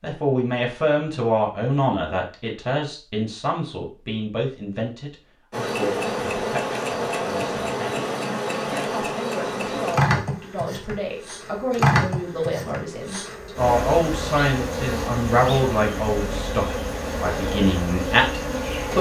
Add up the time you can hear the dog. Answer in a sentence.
You can't hear the dog here.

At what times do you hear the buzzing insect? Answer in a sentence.
You can hear the buzzing insect from 5.5 to 18.9 s.